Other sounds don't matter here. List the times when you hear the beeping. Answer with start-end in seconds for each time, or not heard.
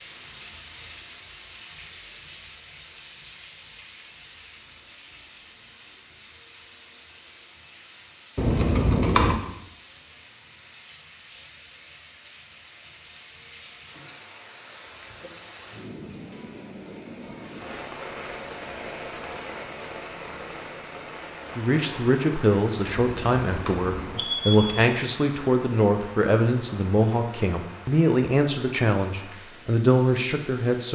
8.3-9.3, 22.9-24.9.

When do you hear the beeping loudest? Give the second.
9 s.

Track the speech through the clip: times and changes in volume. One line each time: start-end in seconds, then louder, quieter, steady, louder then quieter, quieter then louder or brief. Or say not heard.
21.6-30.9 steady.